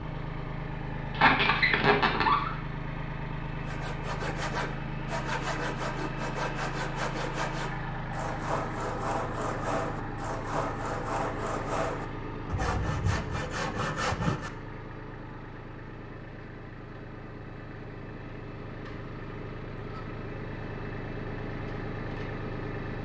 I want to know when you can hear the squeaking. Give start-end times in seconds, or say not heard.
1.1-2.5.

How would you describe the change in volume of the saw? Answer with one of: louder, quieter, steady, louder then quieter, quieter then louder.
steady.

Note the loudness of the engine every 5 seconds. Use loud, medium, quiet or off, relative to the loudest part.
loud, loud, loud, medium, loud.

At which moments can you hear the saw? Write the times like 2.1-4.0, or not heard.
3.6-14.5.